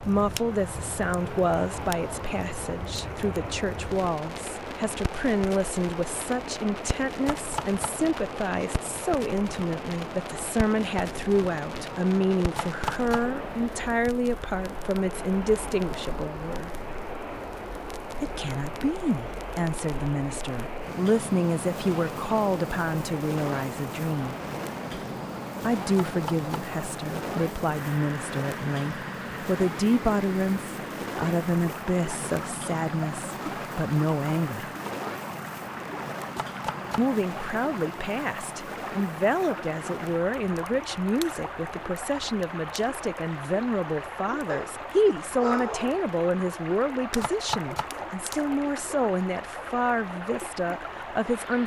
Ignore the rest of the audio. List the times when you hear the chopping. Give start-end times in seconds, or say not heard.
7.2-8.0, 12.6-13.3, 25.9-26.7, 36.4-37.1, 47.2-48.0.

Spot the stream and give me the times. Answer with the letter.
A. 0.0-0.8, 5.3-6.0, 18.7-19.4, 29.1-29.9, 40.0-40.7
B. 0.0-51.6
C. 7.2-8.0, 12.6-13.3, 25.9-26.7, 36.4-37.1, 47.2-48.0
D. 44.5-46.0
B.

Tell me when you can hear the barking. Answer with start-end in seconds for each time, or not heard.
44.5-46.0.